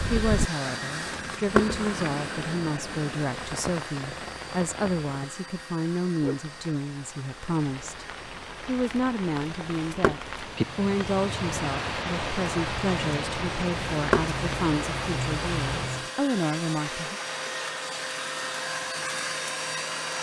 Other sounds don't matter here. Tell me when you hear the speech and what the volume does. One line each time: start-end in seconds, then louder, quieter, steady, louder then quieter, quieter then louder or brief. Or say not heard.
0.1-8.1 steady
8.7-17.2 steady.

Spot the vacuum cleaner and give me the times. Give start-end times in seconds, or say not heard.
0.0-20.1.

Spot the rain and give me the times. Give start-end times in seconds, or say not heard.
0.0-16.1.